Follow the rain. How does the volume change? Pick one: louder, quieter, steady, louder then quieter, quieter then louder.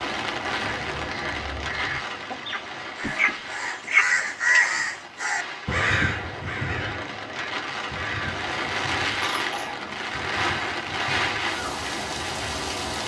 quieter then louder.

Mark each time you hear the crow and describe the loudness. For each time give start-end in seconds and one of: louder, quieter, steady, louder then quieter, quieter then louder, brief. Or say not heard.
0.6-12.6 louder then quieter.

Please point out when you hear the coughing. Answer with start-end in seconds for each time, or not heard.
3.0-3.6, 9.2-9.8.